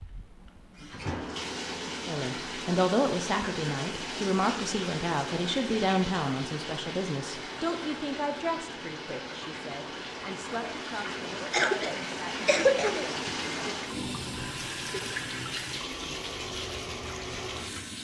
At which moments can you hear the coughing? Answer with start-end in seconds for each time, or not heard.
11.5-13.3.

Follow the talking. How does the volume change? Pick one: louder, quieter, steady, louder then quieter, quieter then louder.
quieter.